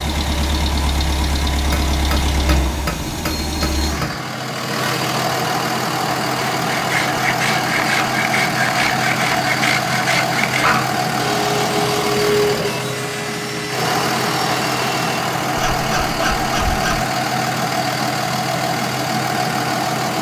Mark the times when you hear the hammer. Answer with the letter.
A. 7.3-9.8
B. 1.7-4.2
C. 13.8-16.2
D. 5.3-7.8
B.